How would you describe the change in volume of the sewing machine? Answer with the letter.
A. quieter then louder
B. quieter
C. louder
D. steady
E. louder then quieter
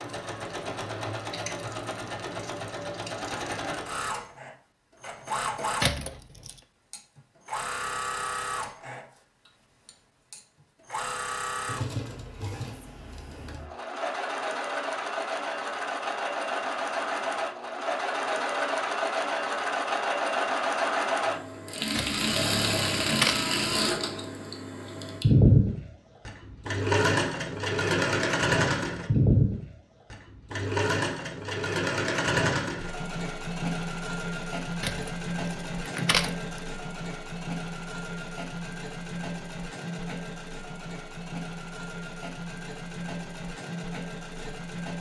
E.